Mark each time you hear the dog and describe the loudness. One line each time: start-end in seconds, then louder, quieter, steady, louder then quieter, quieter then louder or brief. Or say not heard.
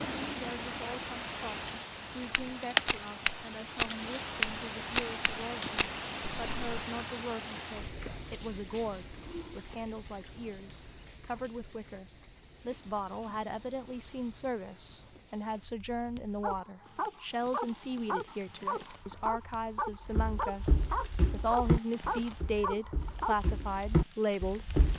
16.4-23.5 steady.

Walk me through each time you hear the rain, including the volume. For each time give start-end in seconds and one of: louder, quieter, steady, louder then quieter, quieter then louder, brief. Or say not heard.
0.0-24.9 quieter.